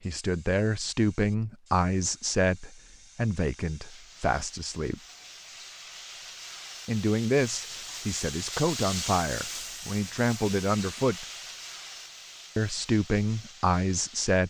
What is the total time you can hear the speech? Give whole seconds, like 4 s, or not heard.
11 s.